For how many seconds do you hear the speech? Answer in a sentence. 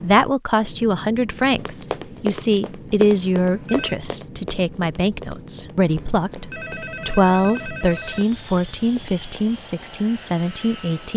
You can hear the speech for 11 seconds altogether.